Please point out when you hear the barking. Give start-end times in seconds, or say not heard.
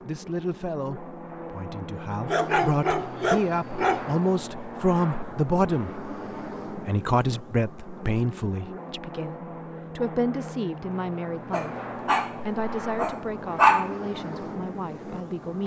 2.2-4.2, 11.5-13.9.